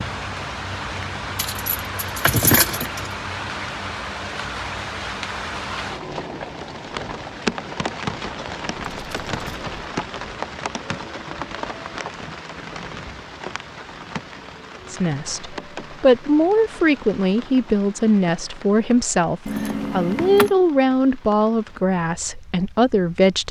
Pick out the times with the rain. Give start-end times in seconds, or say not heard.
0.0-23.4.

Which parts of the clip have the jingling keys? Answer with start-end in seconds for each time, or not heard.
1.4-3.1, 8.8-9.9, 19.4-20.6.